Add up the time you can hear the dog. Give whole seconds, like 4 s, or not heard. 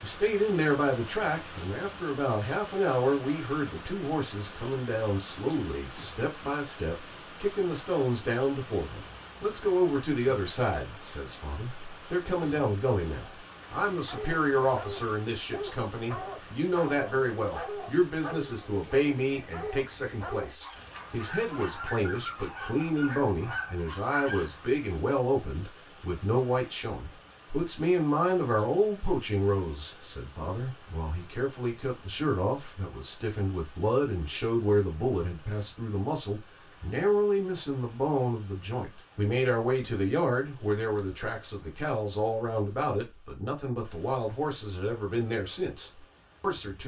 11 s.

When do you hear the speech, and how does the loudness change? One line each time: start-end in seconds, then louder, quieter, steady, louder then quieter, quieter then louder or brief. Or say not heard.
0.0-46.8 steady.